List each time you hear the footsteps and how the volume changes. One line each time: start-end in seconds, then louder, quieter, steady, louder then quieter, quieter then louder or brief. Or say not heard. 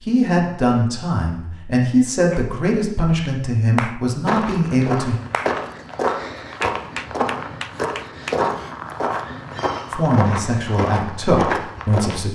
4.2-12.2 steady.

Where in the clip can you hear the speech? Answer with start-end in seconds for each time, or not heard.
0.0-5.2, 9.9-12.3.